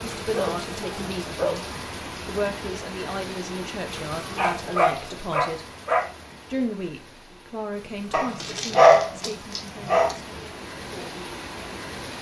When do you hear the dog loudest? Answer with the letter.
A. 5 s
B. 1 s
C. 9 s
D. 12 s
C.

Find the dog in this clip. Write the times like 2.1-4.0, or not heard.
0.2-2.0, 4.3-6.1, 8.1-10.2.